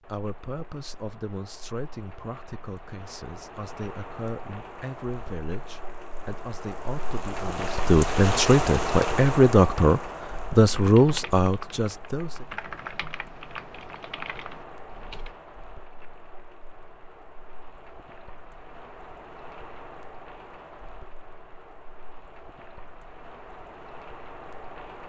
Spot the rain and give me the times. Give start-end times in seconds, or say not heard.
0.0-25.0.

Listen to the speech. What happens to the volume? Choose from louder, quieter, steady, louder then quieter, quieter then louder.
louder.